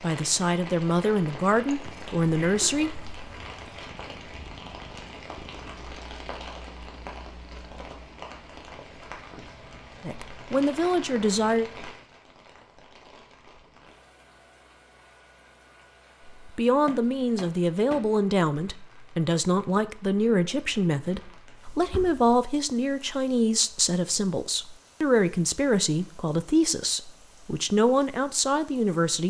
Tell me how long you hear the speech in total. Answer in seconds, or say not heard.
18 s.